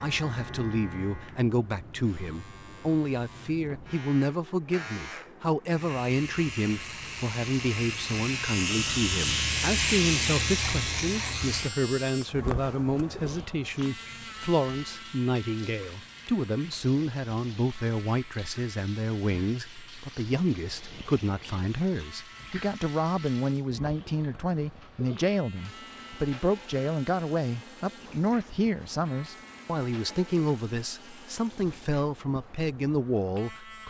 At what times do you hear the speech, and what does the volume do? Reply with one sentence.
You can hear the speech from 0.0 to 33.8 s, at a steady volume.